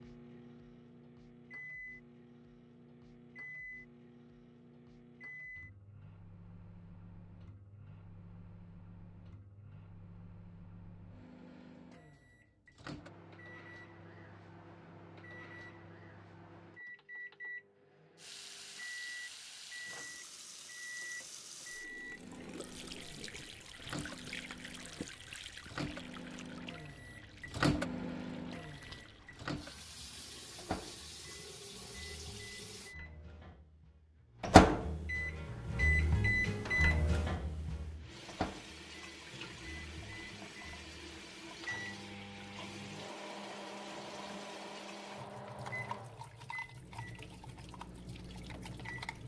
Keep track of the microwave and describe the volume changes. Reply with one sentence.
The volume of the microwave goes up, then down.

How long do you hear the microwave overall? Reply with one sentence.
The microwave can be heard for 49 seconds in total.